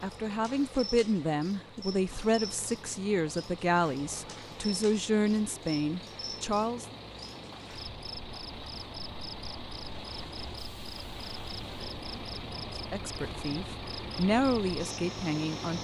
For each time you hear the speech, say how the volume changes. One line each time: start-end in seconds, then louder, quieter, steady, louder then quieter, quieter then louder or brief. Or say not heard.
0.0-7.0 steady
12.9-15.7 brief.